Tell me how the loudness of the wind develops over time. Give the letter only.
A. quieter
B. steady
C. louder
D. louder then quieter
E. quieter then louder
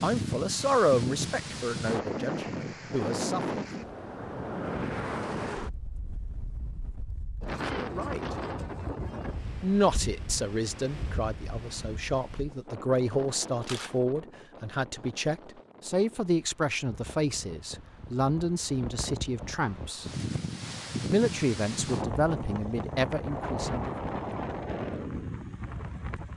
E.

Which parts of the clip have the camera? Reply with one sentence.
You can hear the camera from 13.6 to 14.0 s.